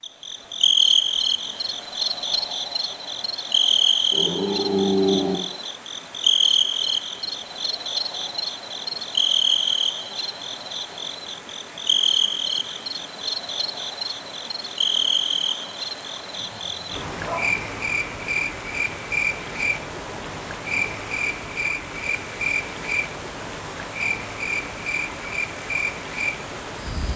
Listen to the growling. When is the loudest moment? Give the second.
5 s.